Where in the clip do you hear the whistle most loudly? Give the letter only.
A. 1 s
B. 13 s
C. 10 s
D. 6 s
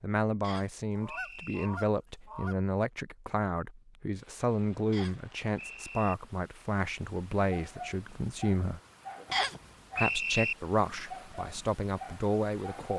C.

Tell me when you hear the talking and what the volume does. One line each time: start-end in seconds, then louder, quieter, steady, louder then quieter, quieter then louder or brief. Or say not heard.
0.0-8.8 steady
9.9-12.9 brief.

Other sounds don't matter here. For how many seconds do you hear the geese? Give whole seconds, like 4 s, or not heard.
2 s.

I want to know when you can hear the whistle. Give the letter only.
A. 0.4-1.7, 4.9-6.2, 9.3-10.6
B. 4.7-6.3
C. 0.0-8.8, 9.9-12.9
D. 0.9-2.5
A.